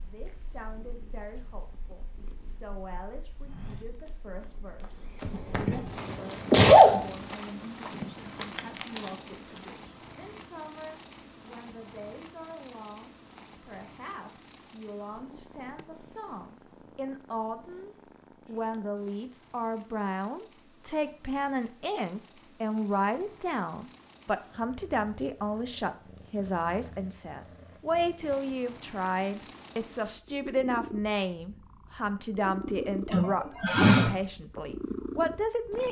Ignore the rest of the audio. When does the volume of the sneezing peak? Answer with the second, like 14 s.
7 s.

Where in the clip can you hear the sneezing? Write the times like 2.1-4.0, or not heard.
5.2-7.0, 33.1-34.1.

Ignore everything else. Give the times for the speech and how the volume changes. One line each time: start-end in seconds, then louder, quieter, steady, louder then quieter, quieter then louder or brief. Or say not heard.
0.0-35.8 louder.